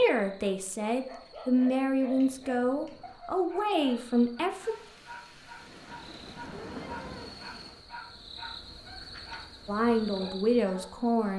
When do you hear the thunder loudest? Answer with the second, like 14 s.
7 s.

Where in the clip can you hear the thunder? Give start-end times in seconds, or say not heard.
4.5-7.9.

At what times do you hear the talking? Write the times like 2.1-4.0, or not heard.
0.0-4.8, 9.7-11.3.